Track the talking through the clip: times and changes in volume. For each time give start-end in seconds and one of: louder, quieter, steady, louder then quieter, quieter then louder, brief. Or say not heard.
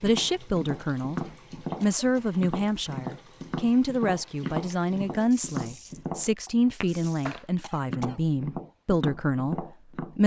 0.0-10.2 steady.